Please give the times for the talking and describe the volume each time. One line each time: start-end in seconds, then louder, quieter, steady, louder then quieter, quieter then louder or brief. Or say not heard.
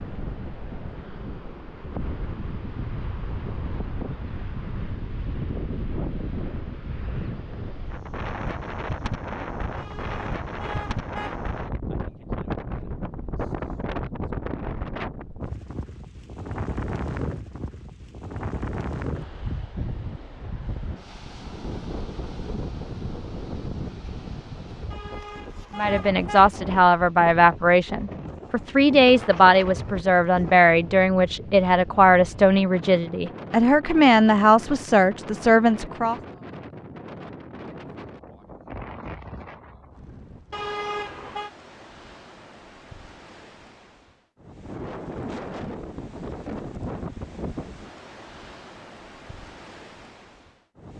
25.8-36.1 steady.